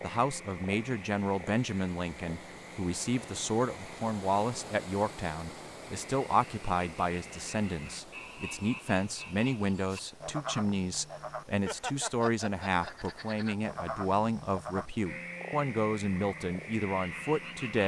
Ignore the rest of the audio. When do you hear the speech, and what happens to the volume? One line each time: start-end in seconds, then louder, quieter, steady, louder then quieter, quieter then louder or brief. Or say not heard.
0.0-17.8 steady.